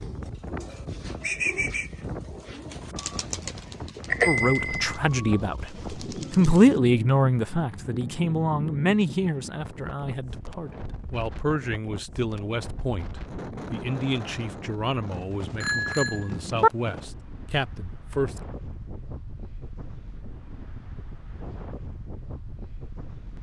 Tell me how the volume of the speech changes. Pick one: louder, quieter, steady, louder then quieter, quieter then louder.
quieter.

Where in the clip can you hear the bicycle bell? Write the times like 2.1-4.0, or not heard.
4.1-4.9, 15.6-16.7.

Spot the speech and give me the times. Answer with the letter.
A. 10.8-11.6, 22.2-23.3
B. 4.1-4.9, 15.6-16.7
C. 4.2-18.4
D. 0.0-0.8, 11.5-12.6
C.